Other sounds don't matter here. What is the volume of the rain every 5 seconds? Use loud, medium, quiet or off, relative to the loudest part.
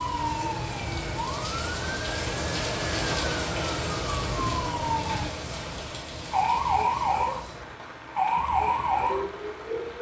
loud, medium.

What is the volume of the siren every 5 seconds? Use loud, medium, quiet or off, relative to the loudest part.
medium, loud.